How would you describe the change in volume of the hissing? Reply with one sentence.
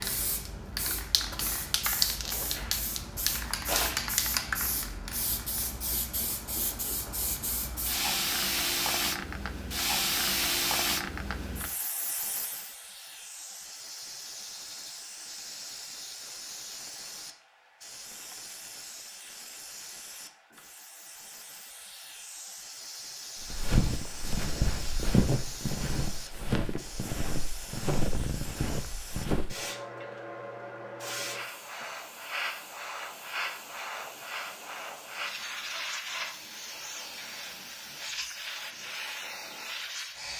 The volume of the hissing goes down, then up.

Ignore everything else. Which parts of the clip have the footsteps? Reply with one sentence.
The footsteps can be heard from 23.4 to 29.6 s.